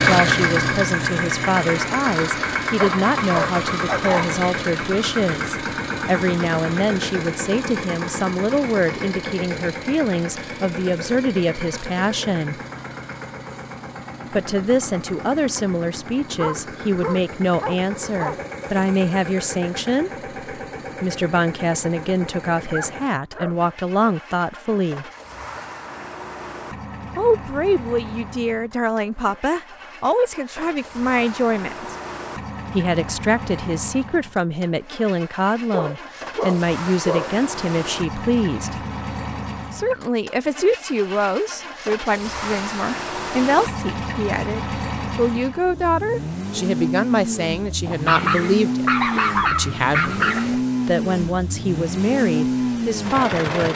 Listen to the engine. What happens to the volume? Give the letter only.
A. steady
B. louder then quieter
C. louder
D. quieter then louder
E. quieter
D.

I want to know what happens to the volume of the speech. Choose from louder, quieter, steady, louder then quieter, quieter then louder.
steady.